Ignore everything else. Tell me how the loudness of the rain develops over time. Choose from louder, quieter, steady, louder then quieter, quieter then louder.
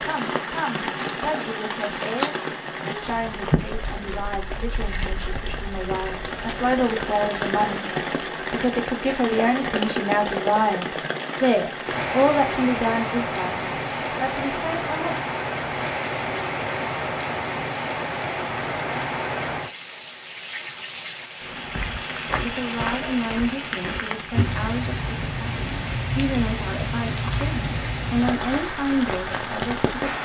steady.